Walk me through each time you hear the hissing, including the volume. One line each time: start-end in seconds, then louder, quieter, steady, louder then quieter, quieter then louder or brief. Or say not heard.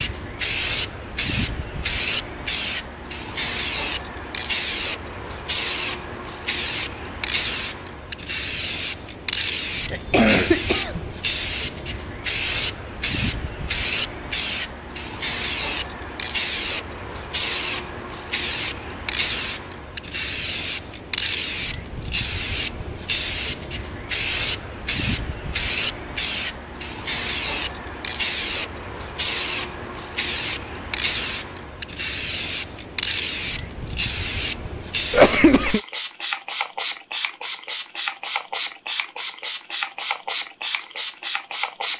0.0-41.9 steady.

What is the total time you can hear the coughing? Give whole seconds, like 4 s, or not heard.
2 s.